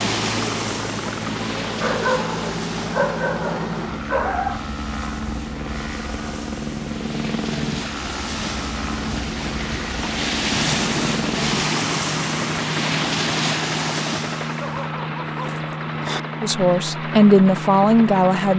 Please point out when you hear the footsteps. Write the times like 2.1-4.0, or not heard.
not heard.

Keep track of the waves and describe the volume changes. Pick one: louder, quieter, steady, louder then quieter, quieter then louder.
quieter then louder.